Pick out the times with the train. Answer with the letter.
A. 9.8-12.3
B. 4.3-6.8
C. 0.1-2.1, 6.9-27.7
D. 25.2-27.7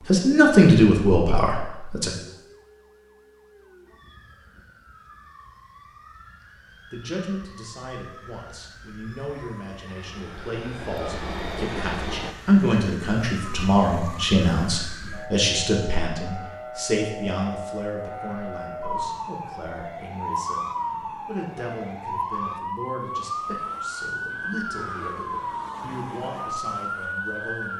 A.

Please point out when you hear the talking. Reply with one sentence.
You can hear the talking from 0.1 to 2.1 s and from 6.9 to 27.7 s.